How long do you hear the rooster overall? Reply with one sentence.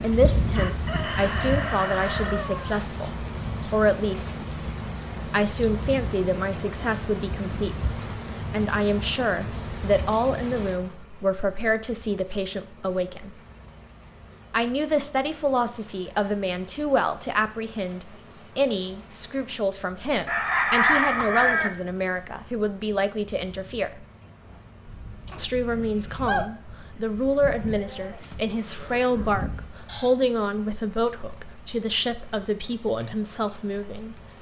The rooster can be heard for 5 seconds in total.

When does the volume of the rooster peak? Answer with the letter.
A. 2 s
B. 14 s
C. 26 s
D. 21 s
D.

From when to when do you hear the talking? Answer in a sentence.
You can hear the talking from 0.0 to 4.5 s, from 5.2 to 7.9 s, from 8.5 to 13.3 s, from 14.5 to 24.1 s and from 25.4 to 34.1 s.